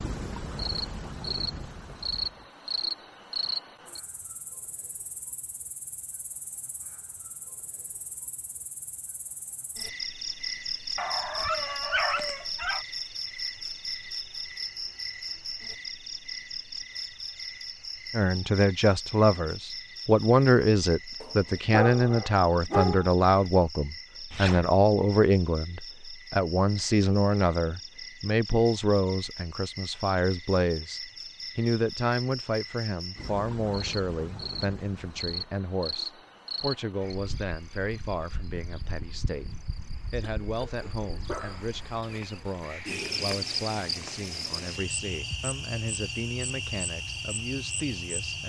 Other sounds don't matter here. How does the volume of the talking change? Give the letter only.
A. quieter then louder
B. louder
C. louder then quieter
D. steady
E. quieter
E.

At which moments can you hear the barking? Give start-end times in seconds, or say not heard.
10.9-12.8, 21.2-23.1, 40.4-41.6.